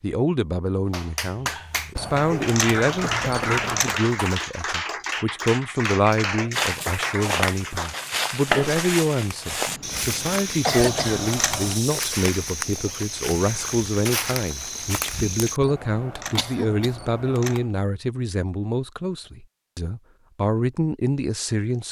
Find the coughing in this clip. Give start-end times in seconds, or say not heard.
2.8-4.8, 9.7-11.3, 16.4-16.9.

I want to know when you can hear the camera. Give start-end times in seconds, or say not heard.
1.9-4.0, 10.8-11.8, 15.6-17.7.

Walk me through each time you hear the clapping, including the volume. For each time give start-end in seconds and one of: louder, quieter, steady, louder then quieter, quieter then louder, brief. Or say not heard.
0.9-8.8 steady.